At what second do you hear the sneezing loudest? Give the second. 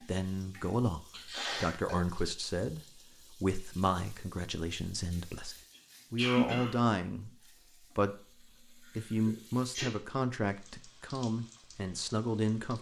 6 s.